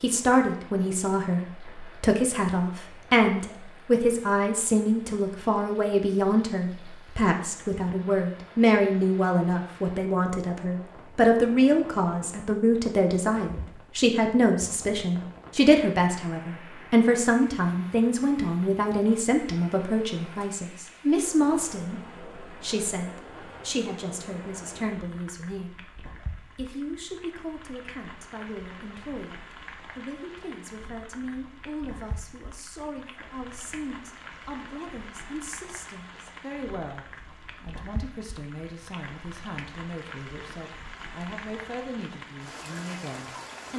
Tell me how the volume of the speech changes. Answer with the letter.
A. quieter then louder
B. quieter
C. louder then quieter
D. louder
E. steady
B.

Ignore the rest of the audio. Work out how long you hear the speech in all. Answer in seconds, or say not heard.
44 s.